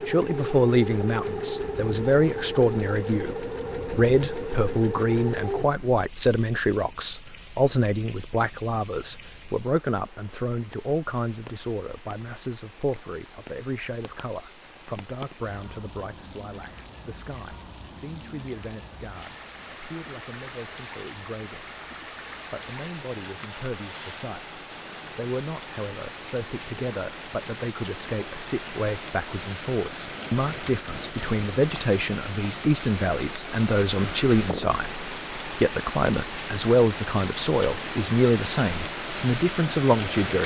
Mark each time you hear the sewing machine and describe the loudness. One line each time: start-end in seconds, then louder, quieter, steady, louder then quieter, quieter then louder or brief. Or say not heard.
0.0-5.7 steady.